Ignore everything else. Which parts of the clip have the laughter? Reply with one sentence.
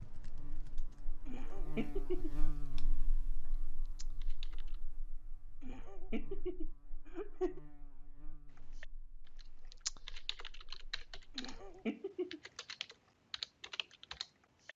You can hear the laughter from 1.2 to 2.4 s, from 5.6 to 7.6 s and from 11.3 to 12.4 s.